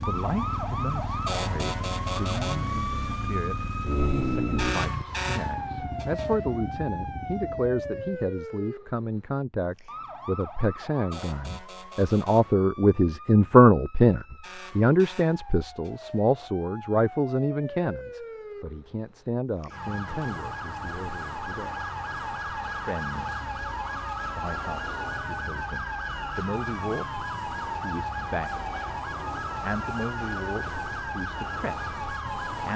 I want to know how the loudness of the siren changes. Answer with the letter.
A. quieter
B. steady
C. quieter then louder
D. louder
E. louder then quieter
C.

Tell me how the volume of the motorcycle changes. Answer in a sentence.
The volume of the motorcycle goes up, then down.